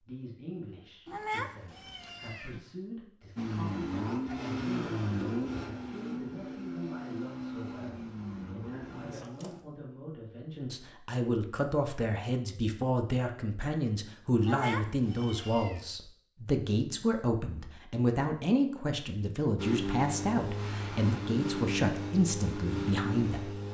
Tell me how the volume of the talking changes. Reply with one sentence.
The loudness of the talking goes up.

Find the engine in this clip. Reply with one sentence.
The engine can be heard from 3.4 to 9.6 s and from 19.6 to 23.6 s.